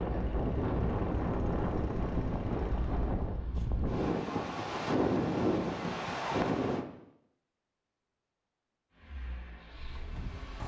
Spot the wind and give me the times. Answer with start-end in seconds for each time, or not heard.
0.0-6.8.